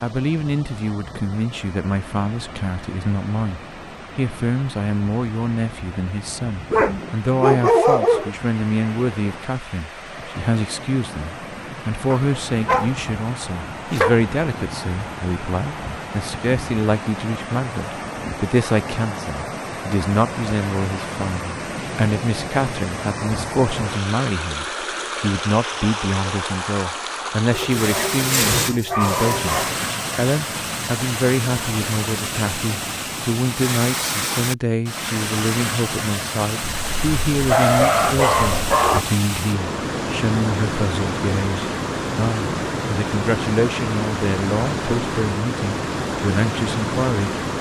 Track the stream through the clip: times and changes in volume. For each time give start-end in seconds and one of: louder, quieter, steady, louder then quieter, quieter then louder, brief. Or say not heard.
0.0-47.5 louder.